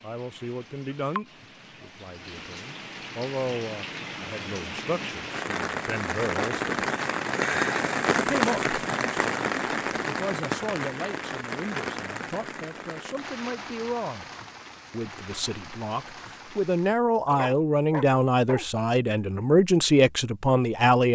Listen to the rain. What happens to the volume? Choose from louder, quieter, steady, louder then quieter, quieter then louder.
louder then quieter.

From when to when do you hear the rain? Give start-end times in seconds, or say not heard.
0.0-17.0.